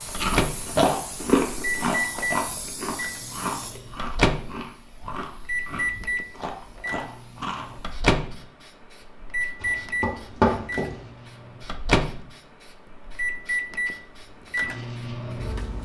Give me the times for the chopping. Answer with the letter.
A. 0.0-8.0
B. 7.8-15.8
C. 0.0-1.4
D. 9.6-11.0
D.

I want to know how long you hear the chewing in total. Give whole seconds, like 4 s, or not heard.
8 s.